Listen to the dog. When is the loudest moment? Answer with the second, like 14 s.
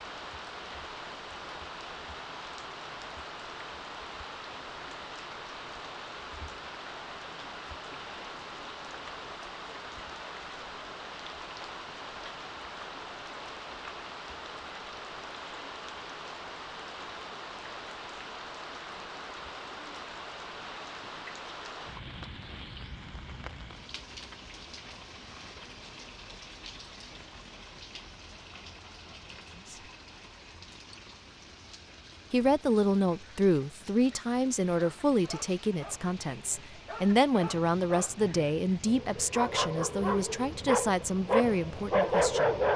42 s.